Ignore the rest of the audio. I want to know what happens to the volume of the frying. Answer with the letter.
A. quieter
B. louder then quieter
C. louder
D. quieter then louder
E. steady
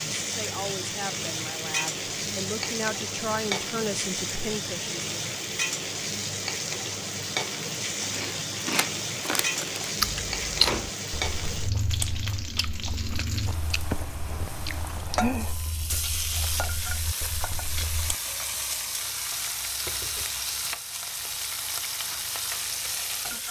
E.